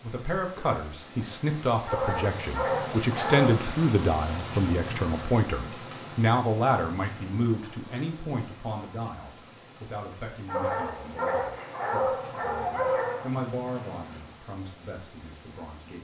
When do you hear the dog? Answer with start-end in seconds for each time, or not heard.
1.9-3.6, 10.4-13.3.